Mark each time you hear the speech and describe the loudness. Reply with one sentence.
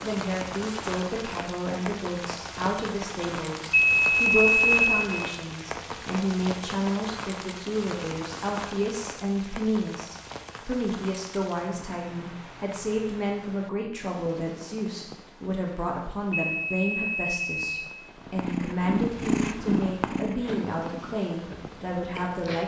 The speech can be heard from 0.0 to 22.6 s, at a steady volume.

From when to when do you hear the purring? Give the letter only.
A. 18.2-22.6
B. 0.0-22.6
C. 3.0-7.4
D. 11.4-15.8
A.